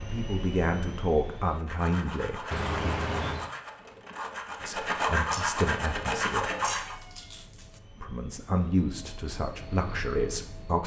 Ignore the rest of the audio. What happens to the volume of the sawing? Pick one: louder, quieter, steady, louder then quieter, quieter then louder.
louder.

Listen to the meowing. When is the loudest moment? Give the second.
3 s.